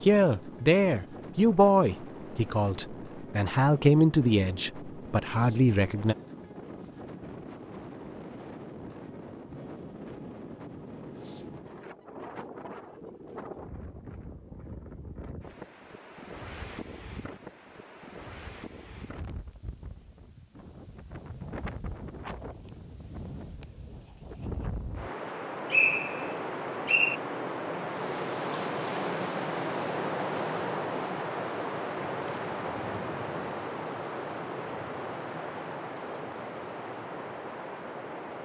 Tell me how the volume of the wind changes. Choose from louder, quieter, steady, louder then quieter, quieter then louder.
louder.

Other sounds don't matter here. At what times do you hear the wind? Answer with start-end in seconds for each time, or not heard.
0.0-38.3.